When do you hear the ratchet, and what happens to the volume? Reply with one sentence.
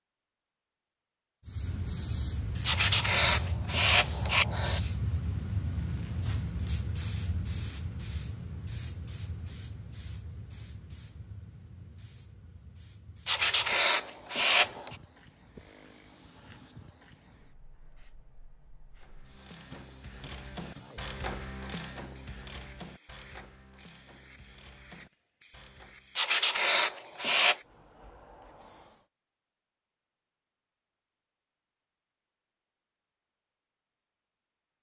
You can hear the ratchet from 18.9 to 26.2 s, getting louder then quieter.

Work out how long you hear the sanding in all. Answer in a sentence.
The sanding can be heard for 5 seconds in total.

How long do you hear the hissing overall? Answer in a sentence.
The hissing can be heard for 28 seconds in total.